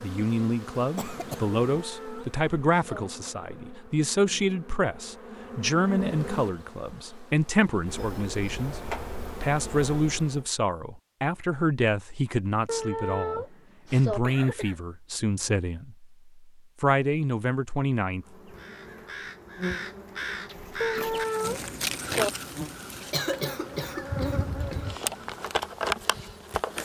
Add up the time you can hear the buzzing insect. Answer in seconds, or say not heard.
19 s.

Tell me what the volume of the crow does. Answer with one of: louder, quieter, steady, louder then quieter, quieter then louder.
quieter.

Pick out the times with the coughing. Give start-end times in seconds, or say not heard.
0.9-1.6, 14.1-14.8, 23.1-24.8.